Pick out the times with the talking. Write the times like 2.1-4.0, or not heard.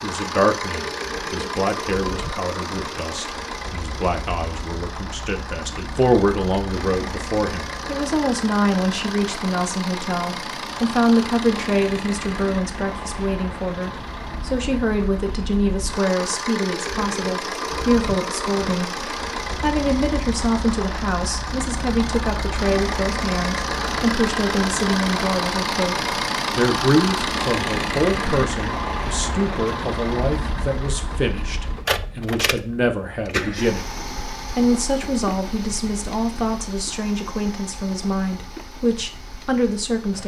0.0-33.9, 34.5-40.2.